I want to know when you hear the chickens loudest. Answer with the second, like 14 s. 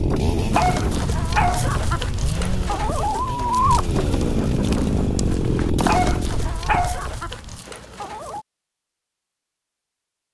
4 s.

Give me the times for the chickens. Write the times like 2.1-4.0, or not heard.
0.5-8.4.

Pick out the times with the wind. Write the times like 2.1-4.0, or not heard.
0.0-7.6.